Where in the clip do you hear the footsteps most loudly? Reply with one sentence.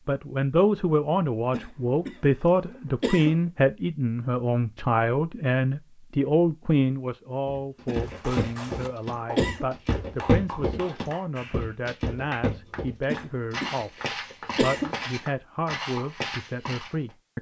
The loudest moment of the footsteps is at 10 seconds.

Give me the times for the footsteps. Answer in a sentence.
You can hear the footsteps from 7.5 to 16.9 s.